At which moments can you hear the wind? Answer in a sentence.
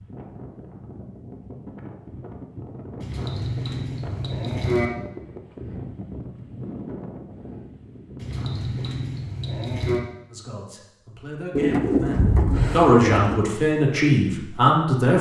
You can hear the wind from 0.0 to 8.8 s.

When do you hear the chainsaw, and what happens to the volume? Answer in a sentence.
The chainsaw can't be heard in this clip.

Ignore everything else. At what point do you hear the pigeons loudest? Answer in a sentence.
The volume of the pigeons peaks at 12 seconds.